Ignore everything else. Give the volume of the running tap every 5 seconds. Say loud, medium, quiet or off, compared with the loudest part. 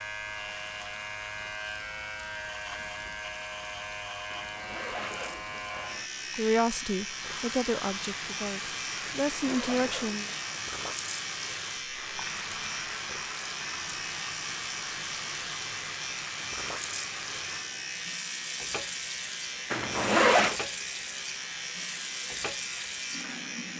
medium, loud, loud, loud, loud.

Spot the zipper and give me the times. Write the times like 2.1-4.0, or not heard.
4.3-6.1, 9.2-10.6, 19.7-20.6.